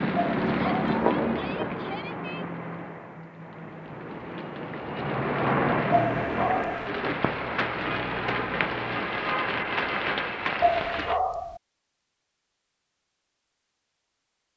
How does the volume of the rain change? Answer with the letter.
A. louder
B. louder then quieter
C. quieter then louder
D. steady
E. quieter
C.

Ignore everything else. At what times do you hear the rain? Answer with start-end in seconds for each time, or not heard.
0.0-11.2.